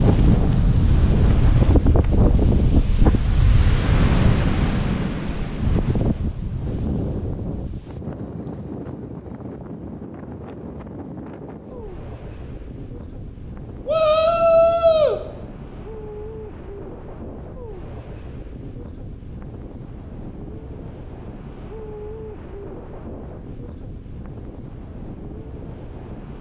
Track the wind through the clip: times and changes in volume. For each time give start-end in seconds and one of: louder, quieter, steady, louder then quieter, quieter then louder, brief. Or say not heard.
0.0-26.3 quieter.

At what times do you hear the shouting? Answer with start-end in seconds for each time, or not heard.
13.8-15.2.